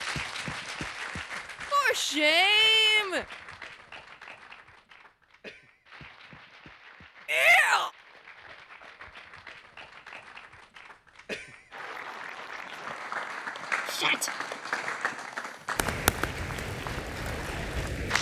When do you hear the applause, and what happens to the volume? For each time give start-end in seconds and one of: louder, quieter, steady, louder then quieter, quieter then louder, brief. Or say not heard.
0.0-18.1 quieter then louder.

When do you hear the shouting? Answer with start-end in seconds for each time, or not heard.
1.7-3.2, 7.2-7.9, 13.8-14.3.